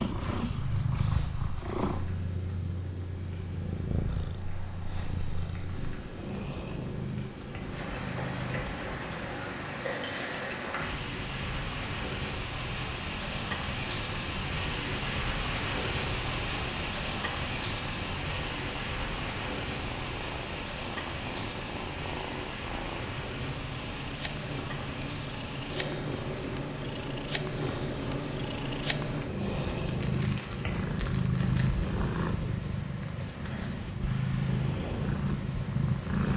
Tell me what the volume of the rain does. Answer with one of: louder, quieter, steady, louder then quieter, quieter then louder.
louder then quieter.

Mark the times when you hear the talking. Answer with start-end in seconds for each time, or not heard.
not heard.